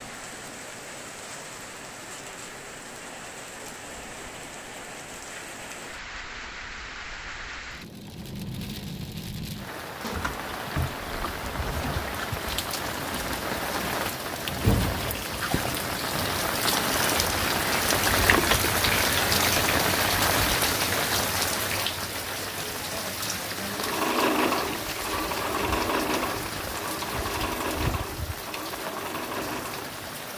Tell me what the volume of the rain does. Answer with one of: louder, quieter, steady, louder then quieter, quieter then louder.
louder then quieter.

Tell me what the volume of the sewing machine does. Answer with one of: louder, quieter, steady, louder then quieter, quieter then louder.
quieter.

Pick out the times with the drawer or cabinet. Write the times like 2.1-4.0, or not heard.
10.0-12.1, 18.1-18.8.